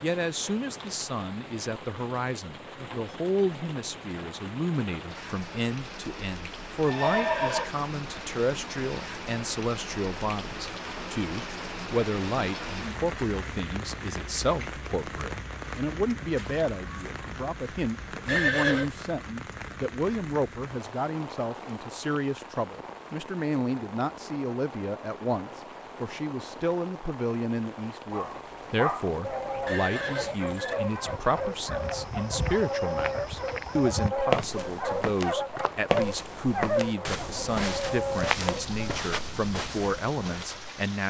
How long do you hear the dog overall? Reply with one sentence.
The dog can be heard for 11 seconds in total.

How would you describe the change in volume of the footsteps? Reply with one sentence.
The volume of the footsteps goes up, then down.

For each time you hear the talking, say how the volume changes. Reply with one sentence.
The talking can be heard from 0.0 to 41.0 s, at a steady volume.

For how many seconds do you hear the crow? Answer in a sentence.
The crow can't be heard in this clip.